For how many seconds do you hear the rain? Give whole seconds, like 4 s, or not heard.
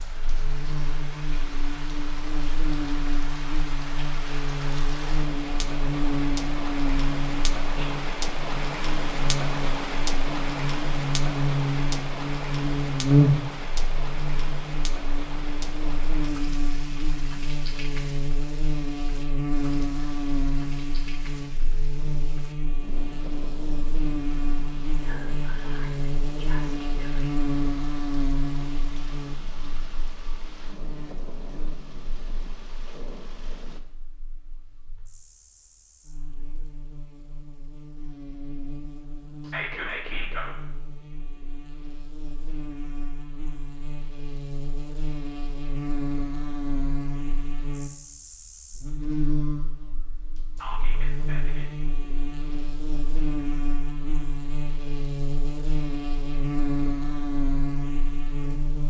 34 s.